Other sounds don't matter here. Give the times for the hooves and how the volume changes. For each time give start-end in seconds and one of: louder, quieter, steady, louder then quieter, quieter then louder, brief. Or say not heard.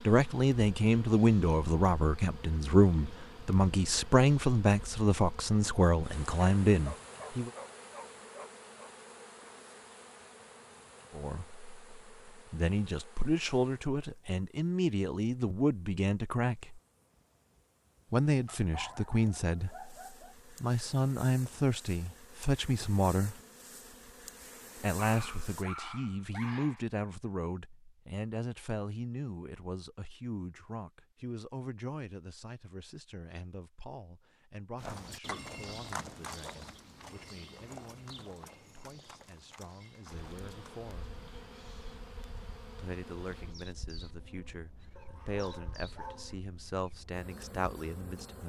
34.8-40.8 quieter.